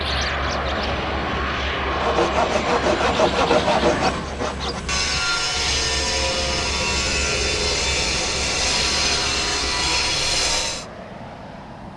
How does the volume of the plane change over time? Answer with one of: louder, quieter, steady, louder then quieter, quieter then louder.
quieter.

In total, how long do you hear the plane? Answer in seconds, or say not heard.
12 s.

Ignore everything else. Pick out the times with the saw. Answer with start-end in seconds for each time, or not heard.
1.9-10.8.